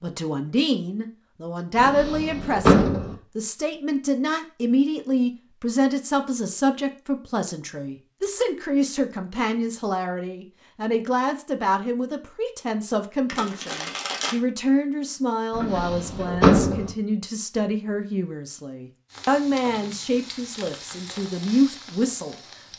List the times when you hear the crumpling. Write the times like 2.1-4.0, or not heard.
13.2-14.3.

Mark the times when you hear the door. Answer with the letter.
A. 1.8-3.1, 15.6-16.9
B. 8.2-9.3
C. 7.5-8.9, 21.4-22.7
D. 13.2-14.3
A.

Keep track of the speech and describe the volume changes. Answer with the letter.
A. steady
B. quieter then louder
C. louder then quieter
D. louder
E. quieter
A.